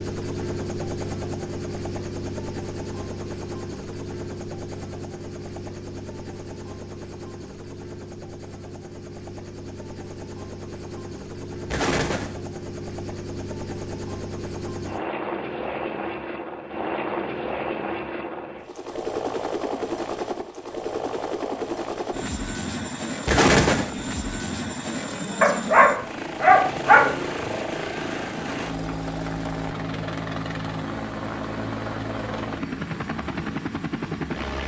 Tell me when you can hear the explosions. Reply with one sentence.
You can hear the explosions from 11.7 to 12.3 s and from 23.2 to 23.9 s.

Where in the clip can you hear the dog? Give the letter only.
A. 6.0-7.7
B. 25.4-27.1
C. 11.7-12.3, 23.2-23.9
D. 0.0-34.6
B.